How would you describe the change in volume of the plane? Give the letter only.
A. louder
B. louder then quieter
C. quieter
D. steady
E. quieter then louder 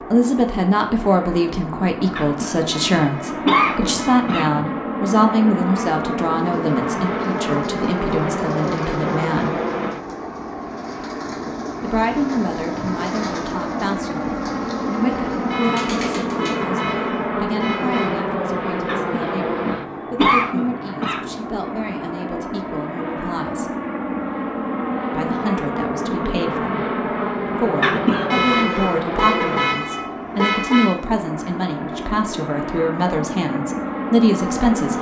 D.